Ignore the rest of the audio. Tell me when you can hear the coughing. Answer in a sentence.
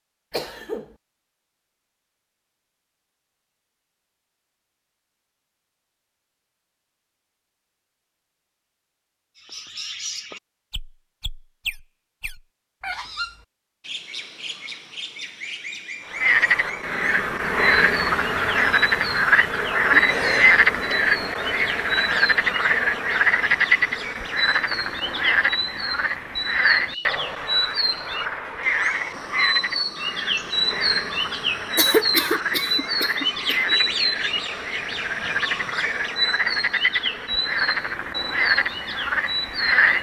The coughing can be heard from 0.3 to 0.9 s, from 19.9 to 20.9 s and from 31.8 to 33.8 s.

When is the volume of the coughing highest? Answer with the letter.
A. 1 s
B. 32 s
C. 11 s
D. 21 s
B.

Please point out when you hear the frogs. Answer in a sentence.
The frogs can be heard from 16.1 to 39.9 s.